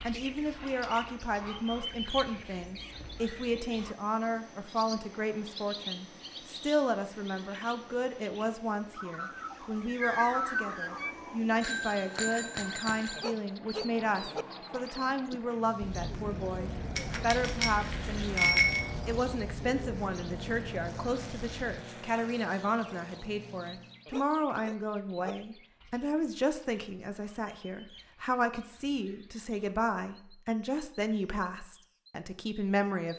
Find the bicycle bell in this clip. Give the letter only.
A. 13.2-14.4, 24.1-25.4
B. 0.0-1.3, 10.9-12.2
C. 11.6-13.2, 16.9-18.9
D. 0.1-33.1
C.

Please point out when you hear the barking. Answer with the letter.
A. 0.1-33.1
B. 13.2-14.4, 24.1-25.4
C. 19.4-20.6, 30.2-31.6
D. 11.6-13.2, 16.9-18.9
B.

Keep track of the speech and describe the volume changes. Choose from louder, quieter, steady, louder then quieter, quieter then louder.
steady.